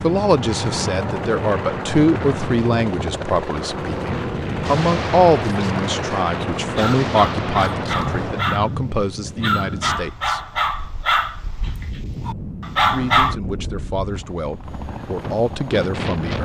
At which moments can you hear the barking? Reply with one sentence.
The barking can be heard from 6.8 to 8.7 s and from 9.4 to 13.3 s.